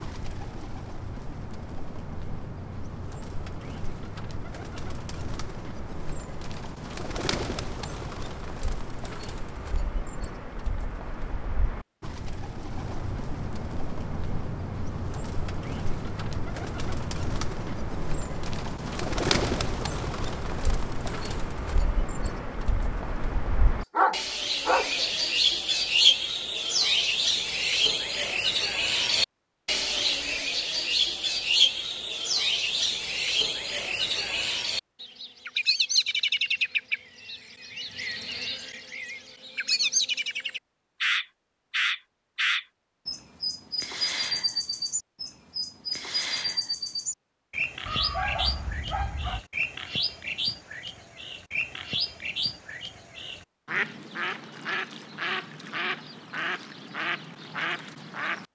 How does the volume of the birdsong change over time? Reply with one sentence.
The loudness of the birdsong goes up, then down.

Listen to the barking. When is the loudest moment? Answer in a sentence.
The volume of the barking peaks at 24 seconds.